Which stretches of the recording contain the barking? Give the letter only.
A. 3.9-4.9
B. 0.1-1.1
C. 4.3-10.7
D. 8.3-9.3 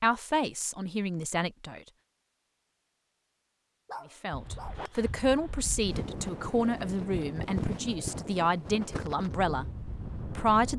A.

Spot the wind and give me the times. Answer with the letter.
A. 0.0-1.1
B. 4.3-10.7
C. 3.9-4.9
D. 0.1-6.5
B.